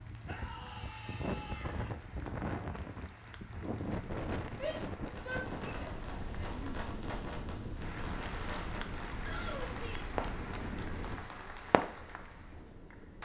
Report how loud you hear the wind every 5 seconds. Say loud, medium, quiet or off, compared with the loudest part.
loud, loud, medium.